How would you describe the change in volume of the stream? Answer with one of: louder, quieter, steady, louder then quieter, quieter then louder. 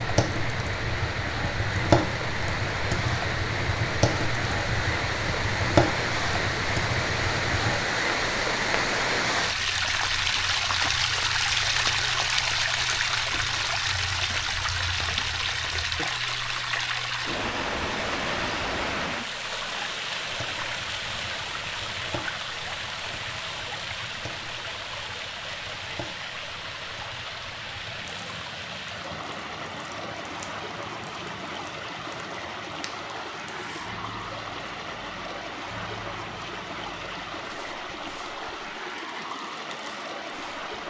quieter.